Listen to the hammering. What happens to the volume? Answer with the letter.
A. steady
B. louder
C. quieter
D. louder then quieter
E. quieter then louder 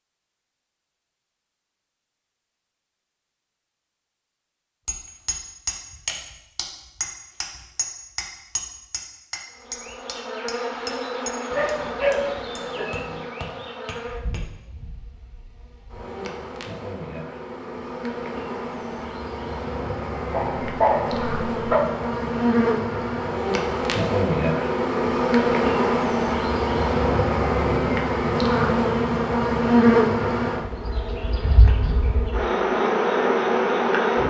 C.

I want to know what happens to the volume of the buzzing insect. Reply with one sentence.
The volume of the buzzing insect goes up.